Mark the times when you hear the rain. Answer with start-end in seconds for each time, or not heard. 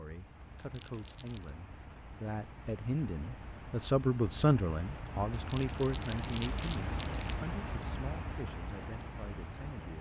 0.0-9.9.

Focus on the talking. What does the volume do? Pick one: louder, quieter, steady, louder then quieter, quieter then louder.
louder then quieter.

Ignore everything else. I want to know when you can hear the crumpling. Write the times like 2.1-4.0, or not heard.
0.6-1.5, 5.3-7.3.